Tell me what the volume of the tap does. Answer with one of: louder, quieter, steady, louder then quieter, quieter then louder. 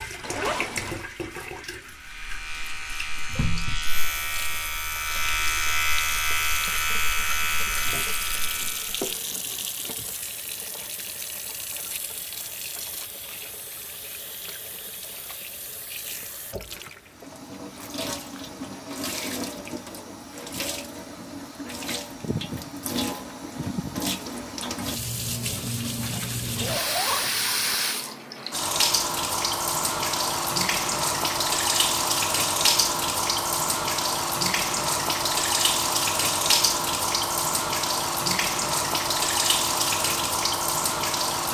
louder.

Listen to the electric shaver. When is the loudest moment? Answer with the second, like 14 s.
6 s.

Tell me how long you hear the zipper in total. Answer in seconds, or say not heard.
2 s.